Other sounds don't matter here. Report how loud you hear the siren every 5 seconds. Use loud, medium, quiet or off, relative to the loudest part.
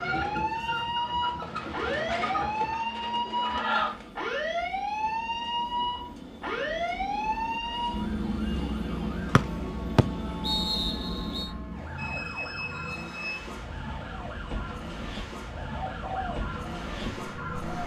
loud, loud, medium, medium.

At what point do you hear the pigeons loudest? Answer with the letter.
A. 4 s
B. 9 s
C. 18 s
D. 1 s
A.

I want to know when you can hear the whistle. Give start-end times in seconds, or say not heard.
9.3-11.5.